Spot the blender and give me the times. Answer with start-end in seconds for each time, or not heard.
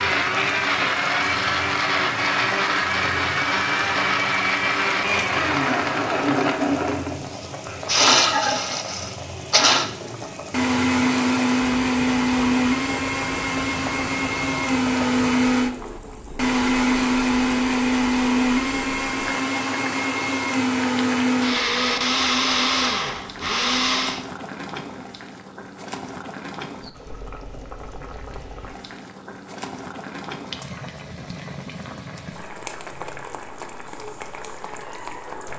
0.0-24.2.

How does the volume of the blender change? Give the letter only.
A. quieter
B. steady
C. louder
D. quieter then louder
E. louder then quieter
B.